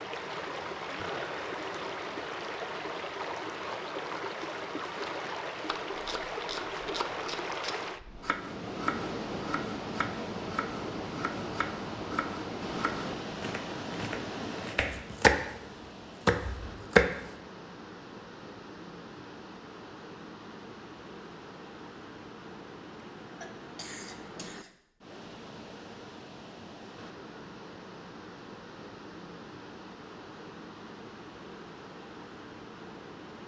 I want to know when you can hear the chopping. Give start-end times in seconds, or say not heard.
5.7-15.4, 16.2-17.1.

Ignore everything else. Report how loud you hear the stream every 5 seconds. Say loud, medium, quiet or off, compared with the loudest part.
loud, loud, loud, medium, medium, medium, medium.